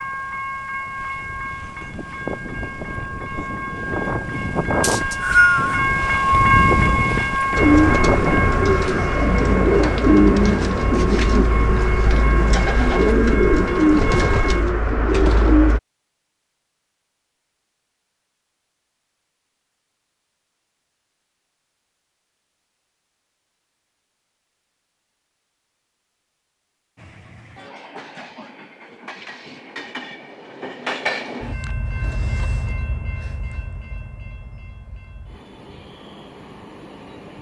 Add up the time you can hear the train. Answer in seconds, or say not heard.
25 s.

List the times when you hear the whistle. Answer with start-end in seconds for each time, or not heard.
4.8-5.8.